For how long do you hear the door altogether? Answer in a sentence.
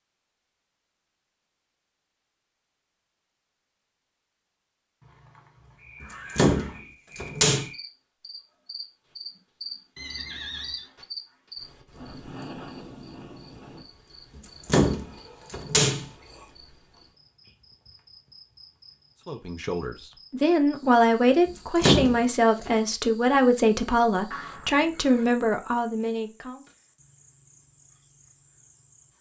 You can hear the door for 5 seconds altogether.